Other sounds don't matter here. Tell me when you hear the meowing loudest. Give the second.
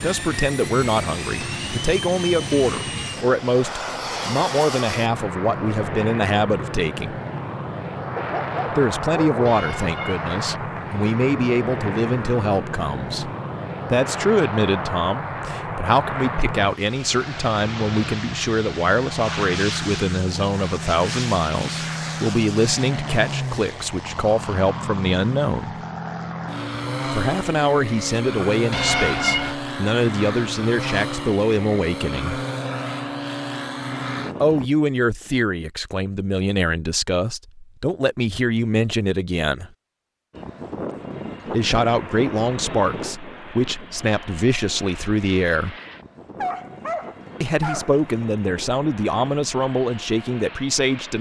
29 s.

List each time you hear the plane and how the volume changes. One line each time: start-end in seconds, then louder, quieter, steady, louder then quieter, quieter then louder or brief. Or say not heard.
0.0-34.6 steady
40.3-51.1 quieter.